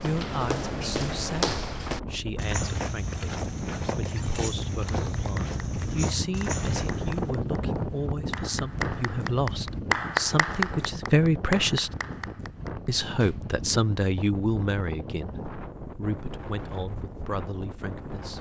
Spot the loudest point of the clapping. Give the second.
10 s.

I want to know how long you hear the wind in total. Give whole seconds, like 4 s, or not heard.
18 s.